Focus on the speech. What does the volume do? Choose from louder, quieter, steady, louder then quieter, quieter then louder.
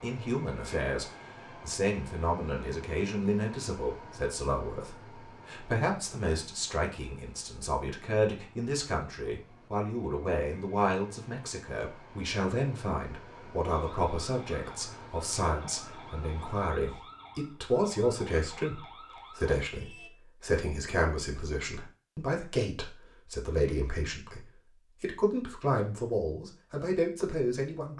steady.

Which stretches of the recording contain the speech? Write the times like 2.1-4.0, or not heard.
0.0-27.9.